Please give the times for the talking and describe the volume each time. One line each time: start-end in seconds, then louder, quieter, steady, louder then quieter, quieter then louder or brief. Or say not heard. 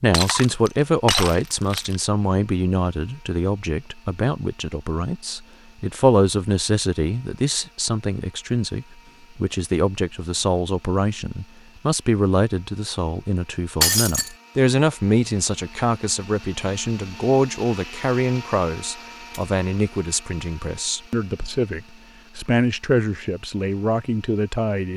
0.0-24.9 steady.